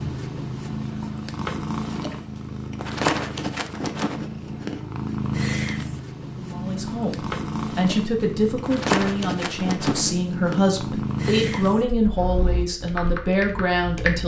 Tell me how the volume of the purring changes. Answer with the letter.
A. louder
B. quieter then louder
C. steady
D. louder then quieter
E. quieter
C.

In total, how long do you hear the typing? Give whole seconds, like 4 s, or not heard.
2 s.